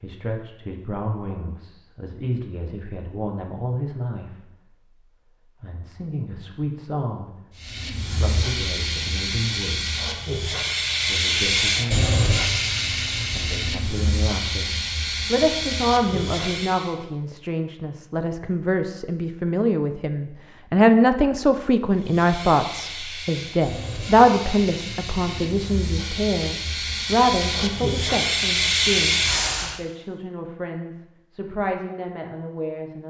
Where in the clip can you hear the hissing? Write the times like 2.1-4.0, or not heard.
7.5-16.9, 21.9-29.8.